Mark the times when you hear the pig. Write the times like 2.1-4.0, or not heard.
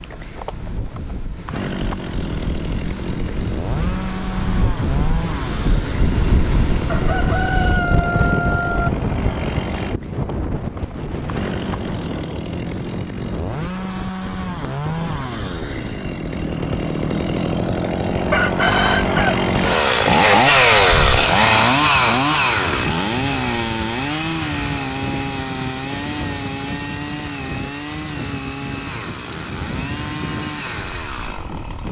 not heard.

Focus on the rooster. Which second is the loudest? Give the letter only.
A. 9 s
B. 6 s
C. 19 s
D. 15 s
C.